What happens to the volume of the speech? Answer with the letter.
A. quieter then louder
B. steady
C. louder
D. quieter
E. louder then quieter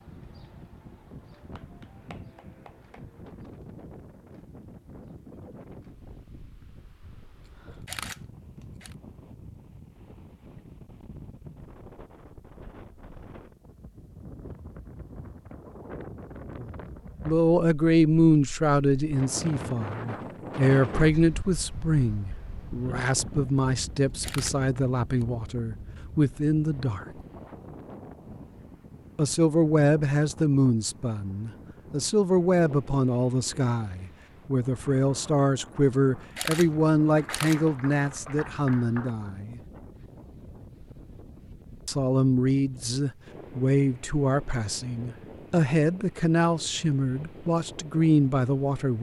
B.